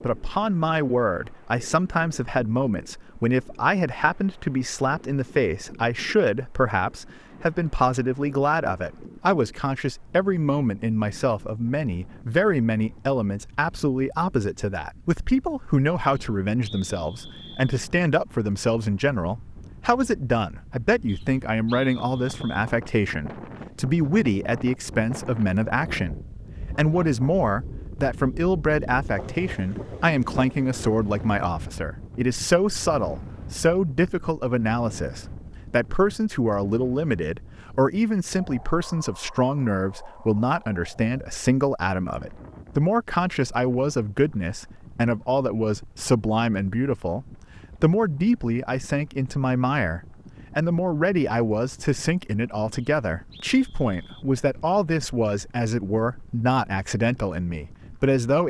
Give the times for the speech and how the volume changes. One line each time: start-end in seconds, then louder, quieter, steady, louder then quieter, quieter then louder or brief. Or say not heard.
0.0-58.4 steady.